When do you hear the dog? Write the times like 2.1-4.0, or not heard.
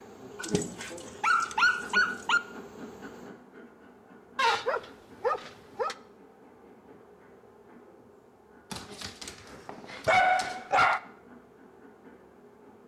0.4-2.4, 4.3-6.0, 8.7-11.0.